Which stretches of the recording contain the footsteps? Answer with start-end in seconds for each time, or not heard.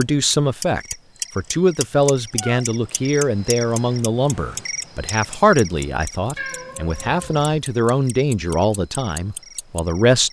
not heard.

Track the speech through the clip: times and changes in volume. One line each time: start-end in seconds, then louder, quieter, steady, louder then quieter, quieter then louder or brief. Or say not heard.
0.0-10.2 steady.